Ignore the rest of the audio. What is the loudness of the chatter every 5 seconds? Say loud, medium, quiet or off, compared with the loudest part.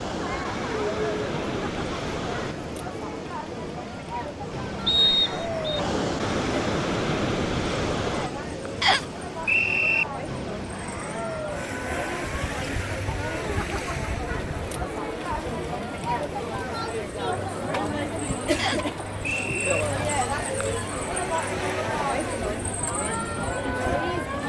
medium, medium, medium, loud, loud.